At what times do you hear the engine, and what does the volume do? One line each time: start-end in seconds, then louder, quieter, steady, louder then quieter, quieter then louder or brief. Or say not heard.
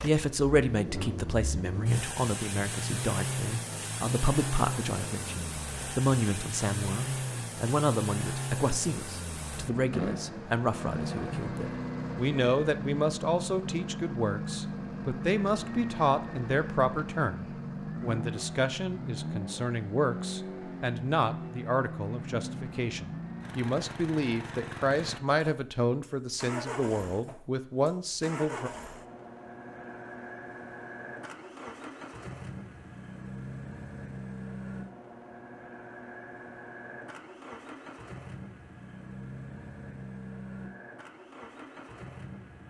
0.0-42.6 quieter.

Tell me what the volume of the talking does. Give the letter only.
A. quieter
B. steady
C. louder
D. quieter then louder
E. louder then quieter
B.